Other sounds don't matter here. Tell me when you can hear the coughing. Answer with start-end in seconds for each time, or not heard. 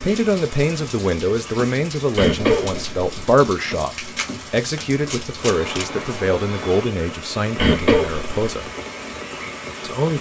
2.1-3.4, 7.5-8.4.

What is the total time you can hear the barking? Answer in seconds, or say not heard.
not heard.